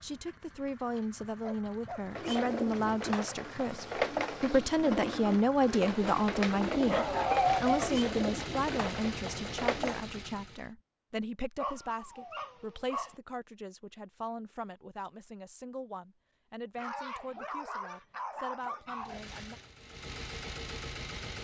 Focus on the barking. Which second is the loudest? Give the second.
7 s.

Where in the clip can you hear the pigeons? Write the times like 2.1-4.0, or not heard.
2.0-10.1.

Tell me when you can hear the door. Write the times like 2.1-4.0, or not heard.
not heard.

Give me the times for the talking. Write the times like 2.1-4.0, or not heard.
0.0-19.6.